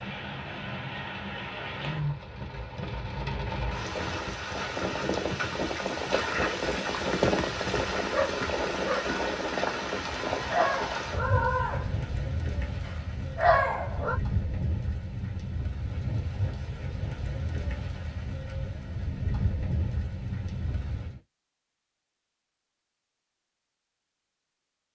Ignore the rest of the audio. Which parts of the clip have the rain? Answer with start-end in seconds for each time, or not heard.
0.0-21.2.